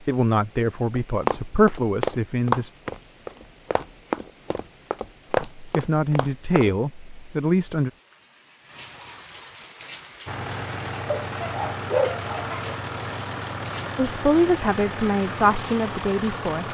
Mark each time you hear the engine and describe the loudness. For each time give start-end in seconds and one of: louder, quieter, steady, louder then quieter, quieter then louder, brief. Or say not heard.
10.2-16.6 steady.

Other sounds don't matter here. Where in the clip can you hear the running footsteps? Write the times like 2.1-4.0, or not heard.
0.9-6.7.